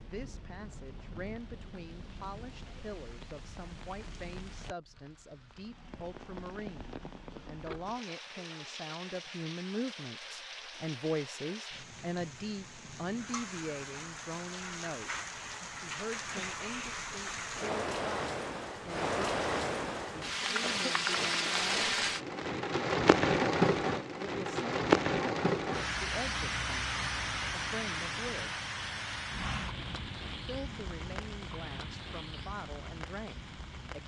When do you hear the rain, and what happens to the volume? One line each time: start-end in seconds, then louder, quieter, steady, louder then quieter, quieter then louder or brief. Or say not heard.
0.0-34.0 louder then quieter.